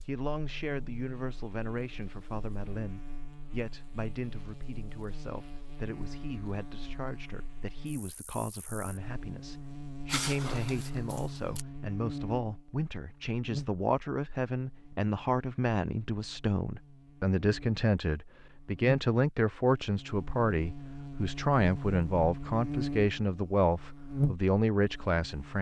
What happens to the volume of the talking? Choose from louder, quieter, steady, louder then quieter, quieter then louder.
louder.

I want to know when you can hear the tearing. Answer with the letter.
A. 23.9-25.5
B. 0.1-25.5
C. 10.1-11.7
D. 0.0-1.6
C.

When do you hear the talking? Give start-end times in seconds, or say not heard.
0.1-25.5.